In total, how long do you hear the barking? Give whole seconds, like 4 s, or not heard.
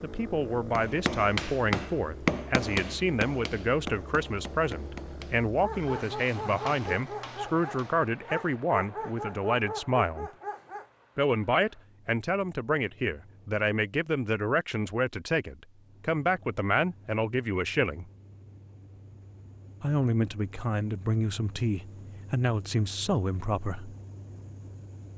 5 s.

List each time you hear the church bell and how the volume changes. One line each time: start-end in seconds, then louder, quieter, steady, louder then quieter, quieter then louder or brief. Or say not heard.
not heard.